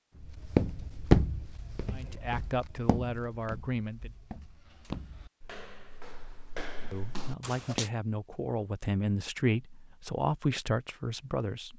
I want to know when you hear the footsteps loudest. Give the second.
1 s.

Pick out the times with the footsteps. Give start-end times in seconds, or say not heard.
0.2-7.9.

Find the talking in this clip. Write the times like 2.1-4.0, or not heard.
1.9-4.1, 6.9-11.7.